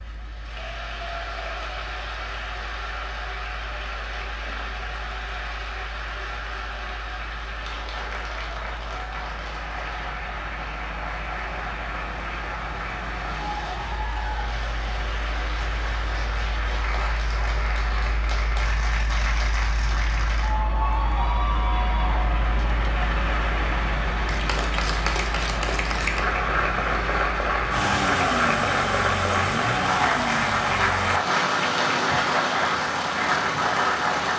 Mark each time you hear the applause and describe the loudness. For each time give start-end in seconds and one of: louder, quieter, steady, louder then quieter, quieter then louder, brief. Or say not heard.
0.0-34.3 louder.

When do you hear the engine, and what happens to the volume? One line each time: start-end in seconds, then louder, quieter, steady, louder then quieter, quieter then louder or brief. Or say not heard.
0.0-34.3 louder.